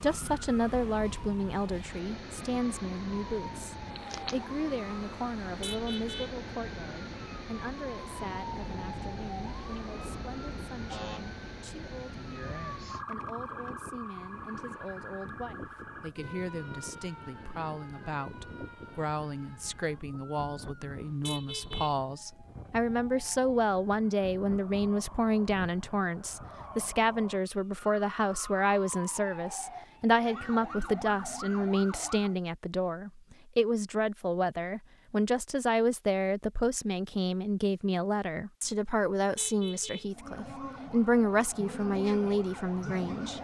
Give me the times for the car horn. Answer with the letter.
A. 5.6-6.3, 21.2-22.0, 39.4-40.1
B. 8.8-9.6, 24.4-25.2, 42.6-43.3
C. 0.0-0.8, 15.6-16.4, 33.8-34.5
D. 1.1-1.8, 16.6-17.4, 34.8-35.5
A.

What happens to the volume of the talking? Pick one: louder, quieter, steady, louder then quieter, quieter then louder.
quieter then louder.